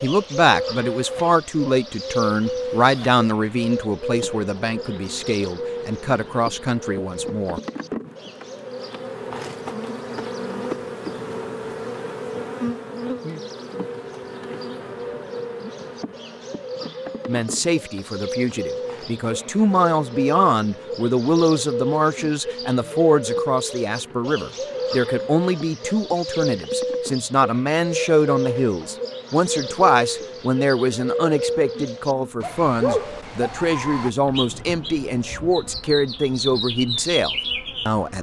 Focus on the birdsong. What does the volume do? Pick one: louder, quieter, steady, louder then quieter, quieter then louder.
quieter then louder.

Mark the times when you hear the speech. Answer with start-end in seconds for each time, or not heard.
0.0-7.6, 17.2-38.1.